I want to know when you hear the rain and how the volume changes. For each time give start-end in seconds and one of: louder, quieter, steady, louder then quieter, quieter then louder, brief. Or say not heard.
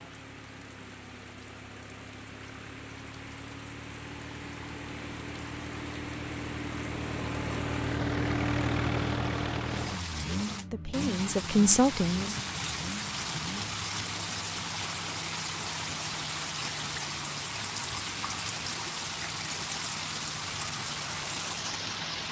0.0-22.2 louder.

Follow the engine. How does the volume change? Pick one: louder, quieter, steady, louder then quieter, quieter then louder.
louder then quieter.